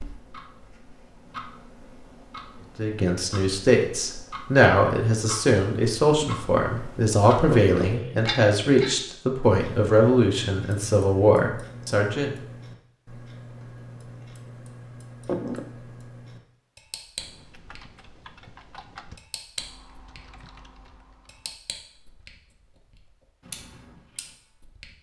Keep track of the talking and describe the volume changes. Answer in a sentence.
The loudness of the talking stays about the same.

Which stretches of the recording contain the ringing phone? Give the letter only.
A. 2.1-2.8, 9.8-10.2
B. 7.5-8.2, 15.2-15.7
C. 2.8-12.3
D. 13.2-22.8
B.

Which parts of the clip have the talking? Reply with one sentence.
The talking can be heard from 2.8 to 12.3 s.